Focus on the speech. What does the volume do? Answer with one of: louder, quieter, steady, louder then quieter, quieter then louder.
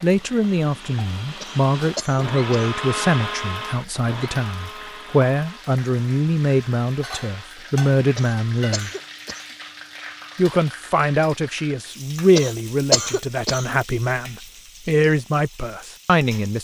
steady.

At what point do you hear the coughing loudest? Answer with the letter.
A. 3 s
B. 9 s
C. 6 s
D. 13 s
D.